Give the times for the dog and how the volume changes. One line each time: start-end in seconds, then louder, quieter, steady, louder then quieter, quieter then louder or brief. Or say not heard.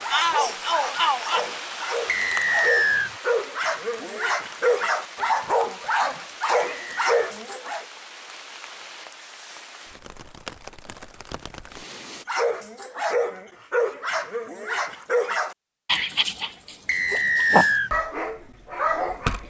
0.0-7.8 louder
12.2-19.4 steady.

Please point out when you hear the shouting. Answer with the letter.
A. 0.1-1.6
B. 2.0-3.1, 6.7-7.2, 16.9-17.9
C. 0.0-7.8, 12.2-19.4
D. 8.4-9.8
A.